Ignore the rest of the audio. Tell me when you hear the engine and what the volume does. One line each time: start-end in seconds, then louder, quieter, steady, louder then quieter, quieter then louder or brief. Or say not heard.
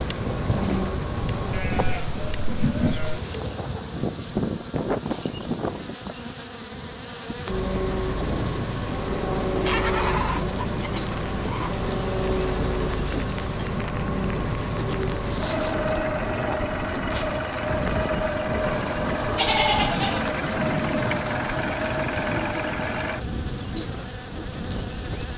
0.0-1.7 brief
7.5-23.2 steady.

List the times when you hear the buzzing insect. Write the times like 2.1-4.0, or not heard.
0.0-25.3.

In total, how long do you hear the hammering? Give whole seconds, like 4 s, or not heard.
not heard.